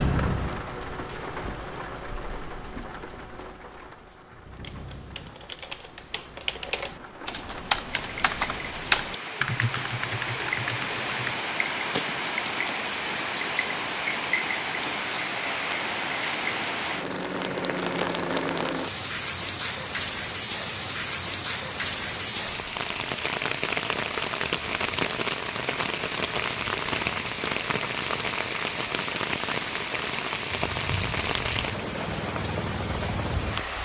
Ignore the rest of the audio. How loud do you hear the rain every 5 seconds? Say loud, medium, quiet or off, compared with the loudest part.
medium, medium, loud, loud, loud, loud, loud.